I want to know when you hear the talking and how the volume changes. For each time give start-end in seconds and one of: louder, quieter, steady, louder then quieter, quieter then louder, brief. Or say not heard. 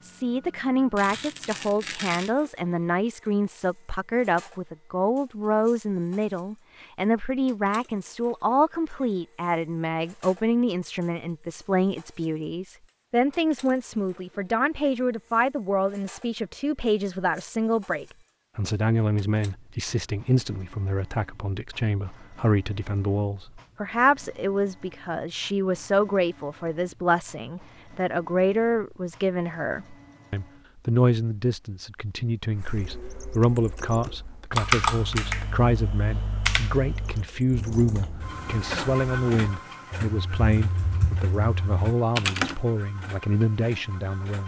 0.0-44.4 steady.